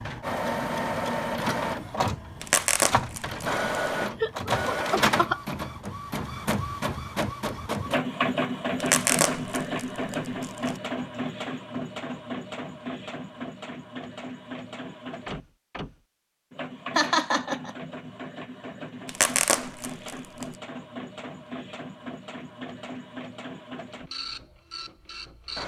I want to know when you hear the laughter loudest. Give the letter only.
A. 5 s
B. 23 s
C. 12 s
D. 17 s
D.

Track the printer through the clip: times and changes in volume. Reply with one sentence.
You can hear the printer from 0.0 to 25.6 s, getting quieter.